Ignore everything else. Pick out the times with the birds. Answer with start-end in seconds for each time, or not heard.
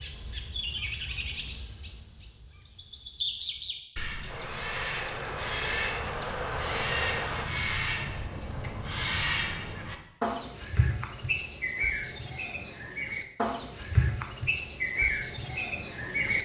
0.0-16.4.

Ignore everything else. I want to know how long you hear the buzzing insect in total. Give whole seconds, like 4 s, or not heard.
3 s.